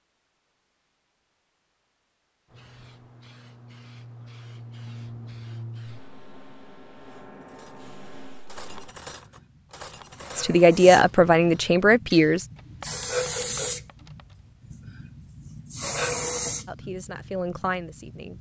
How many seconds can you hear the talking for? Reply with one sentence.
You can hear the talking for 4 seconds altogether.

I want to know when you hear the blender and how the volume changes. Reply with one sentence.
You can't hear the blender here.